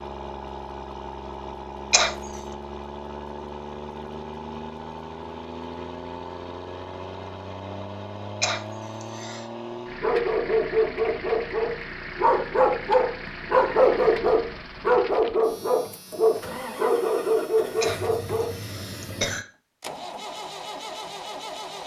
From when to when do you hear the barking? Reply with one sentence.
You can hear the barking from 10.0 to 18.6 s.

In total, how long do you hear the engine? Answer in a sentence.
The engine can be heard for 22 seconds in total.